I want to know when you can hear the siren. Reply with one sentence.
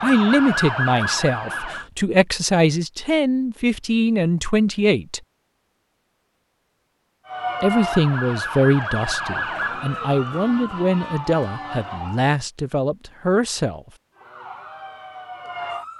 The siren can be heard from 0.0 to 1.9 s, from 7.2 to 12.2 s and from 14.2 to 15.9 s.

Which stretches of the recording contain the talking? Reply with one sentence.
You can hear the talking from 0.0 to 5.2 s and from 7.6 to 13.8 s.